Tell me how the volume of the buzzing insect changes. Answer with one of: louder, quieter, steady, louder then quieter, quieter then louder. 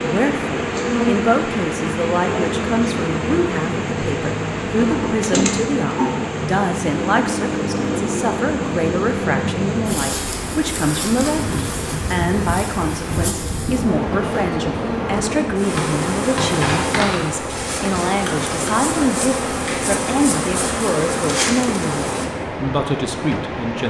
steady.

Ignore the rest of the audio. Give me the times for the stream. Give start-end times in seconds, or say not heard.
0.0-23.8.